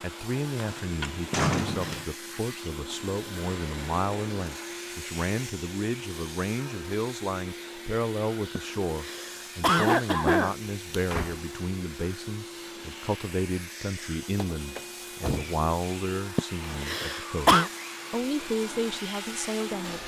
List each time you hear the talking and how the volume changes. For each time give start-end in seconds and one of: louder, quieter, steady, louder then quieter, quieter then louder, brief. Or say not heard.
0.0-20.0 steady.